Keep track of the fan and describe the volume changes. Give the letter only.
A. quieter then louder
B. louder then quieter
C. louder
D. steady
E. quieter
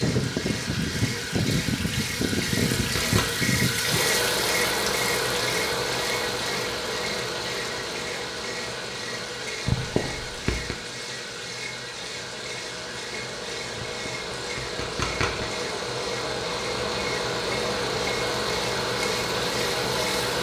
A.